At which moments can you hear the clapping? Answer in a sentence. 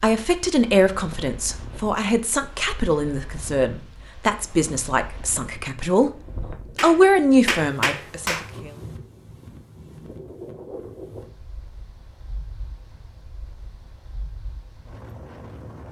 You can hear the clapping from 6.8 to 8.5 s.